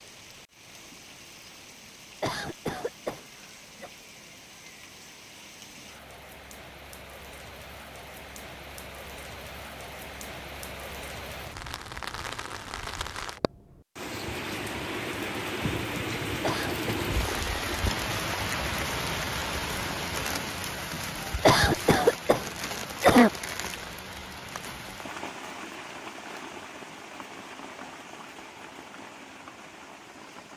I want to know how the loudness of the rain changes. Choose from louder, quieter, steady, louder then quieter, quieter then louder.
louder then quieter.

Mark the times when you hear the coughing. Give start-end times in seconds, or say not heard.
2.2-3.9, 16.4-16.9, 21.4-23.3.